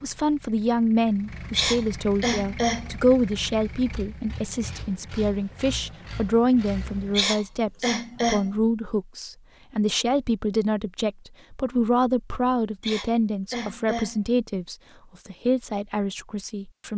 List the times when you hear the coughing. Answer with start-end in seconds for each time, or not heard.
1.5-2.9, 7.1-8.5, 12.8-14.2.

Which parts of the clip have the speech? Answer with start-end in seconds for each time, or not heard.
0.0-16.9.